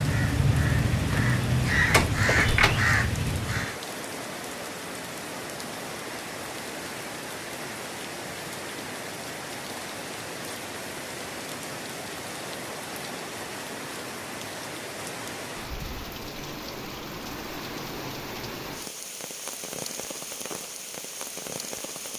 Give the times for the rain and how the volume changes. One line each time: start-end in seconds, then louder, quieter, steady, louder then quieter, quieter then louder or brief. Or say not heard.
0.0-22.1 steady.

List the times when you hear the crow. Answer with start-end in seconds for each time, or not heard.
0.0-3.8.